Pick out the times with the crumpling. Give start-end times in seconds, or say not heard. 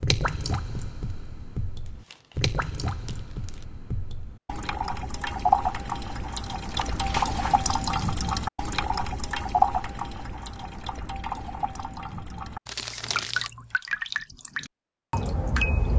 1.9-3.6, 6.7-7.6, 12.7-13.7.